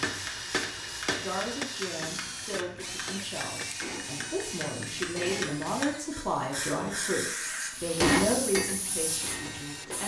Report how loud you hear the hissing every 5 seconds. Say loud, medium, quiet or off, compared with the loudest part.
medium, loud.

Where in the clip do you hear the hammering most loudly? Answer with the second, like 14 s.
8 s.